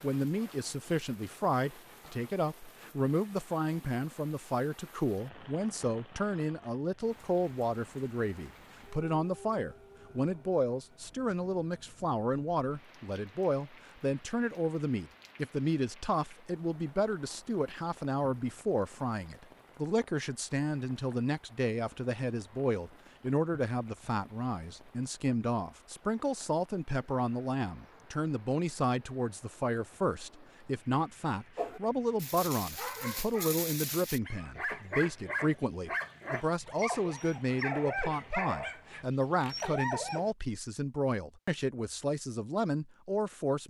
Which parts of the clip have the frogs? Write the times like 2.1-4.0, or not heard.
not heard.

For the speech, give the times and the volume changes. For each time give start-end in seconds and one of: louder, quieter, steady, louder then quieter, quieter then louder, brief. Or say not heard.
0.0-43.6 steady.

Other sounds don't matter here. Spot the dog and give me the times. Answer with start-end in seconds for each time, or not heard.
31.6-40.3.